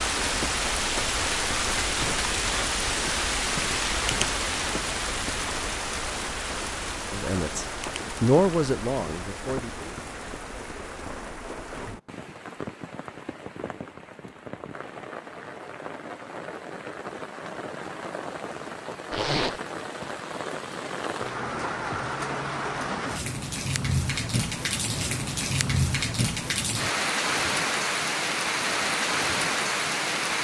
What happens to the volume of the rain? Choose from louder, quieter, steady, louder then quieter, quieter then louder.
quieter then louder.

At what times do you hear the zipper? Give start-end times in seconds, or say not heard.
19.1-19.6.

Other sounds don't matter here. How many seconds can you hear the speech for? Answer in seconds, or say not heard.
3 s.